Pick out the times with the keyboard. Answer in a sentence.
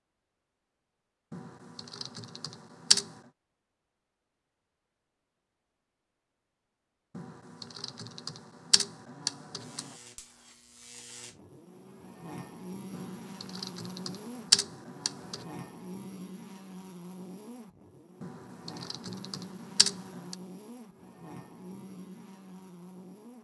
You can hear the keyboard from 1.3 to 3.2 s, from 7.2 to 9.9 s, from 12.9 to 15.4 s and from 18.2 to 20.4 s.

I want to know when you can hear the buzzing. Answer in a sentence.
The buzzing can be heard from 9.6 to 23.4 s.